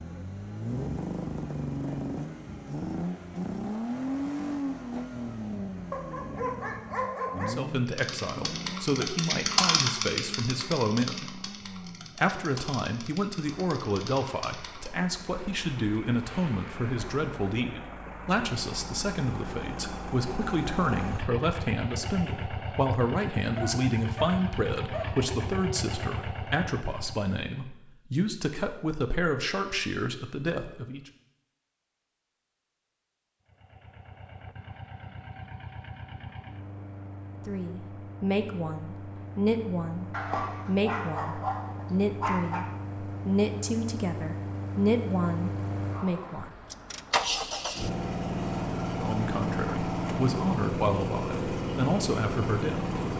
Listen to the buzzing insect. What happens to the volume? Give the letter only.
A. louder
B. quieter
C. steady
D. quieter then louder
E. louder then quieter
B.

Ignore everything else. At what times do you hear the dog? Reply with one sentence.
You can hear the dog from 5.9 to 7.5 s, from 23.6 to 25.1 s and from 40.1 to 42.6 s.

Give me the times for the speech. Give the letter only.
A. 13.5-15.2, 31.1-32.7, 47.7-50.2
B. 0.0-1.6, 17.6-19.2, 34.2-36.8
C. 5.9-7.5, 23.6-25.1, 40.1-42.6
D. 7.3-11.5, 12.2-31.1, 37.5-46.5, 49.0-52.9
D.